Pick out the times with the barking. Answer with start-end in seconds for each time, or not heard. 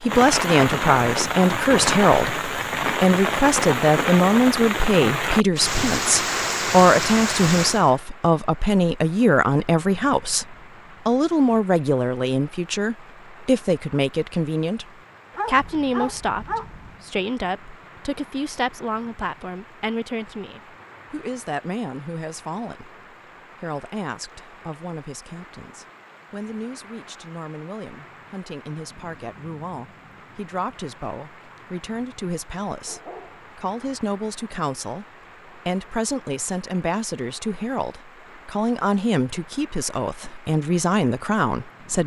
15.3-16.9, 32.9-33.5.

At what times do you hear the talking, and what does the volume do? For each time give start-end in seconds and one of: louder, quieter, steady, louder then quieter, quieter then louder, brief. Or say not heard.
0.0-42.0 quieter then louder.